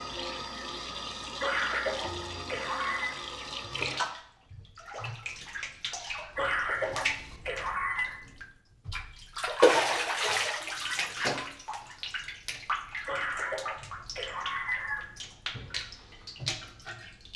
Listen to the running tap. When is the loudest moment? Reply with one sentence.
The volume of the running tap peaks at 10 seconds.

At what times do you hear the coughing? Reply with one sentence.
You can hear the coughing from 1.4 to 3.2 s, from 6.3 to 8.2 s and from 13.1 to 15.1 s.